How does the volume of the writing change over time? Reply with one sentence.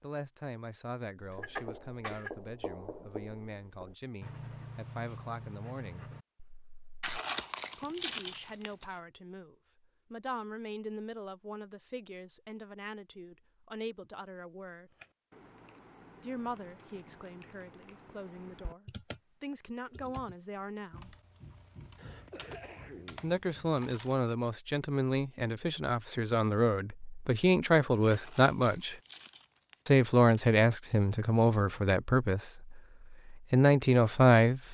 The loudness of the writing goes down, then up.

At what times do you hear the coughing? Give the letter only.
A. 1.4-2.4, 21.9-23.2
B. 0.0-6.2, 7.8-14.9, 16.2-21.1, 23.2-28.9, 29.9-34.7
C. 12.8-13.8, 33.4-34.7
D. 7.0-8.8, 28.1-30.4
A.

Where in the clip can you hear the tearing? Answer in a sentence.
You can hear the tearing from 7.0 to 8.8 s and from 28.1 to 30.4 s.